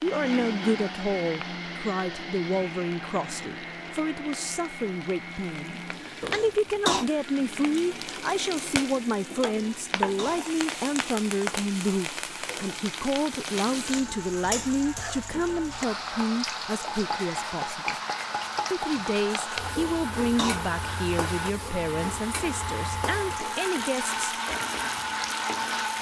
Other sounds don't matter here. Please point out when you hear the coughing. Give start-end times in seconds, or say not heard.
6.2-7.0, 9.6-10.6, 19.8-20.6.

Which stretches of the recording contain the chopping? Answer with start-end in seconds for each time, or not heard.
not heard.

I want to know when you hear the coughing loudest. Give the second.
7 s.